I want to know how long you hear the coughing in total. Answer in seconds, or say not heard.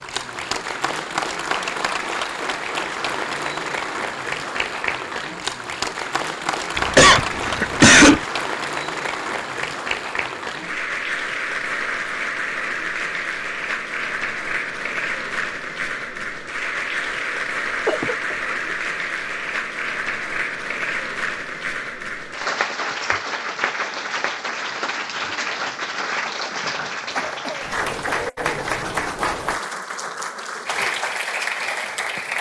4 s.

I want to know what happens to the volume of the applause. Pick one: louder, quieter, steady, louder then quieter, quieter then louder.
steady.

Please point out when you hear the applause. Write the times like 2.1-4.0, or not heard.
0.0-32.3.